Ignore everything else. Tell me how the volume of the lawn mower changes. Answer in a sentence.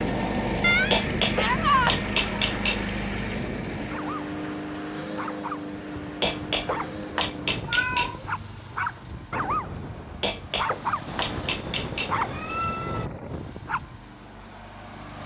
The volume of the lawn mower goes down.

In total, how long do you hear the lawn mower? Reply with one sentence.
You can hear the lawn mower for 15 seconds altogether.